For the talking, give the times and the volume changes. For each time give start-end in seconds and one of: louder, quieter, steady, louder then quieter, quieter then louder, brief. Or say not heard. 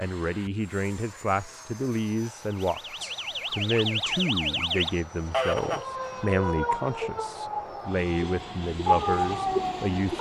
0.0-10.1 steady.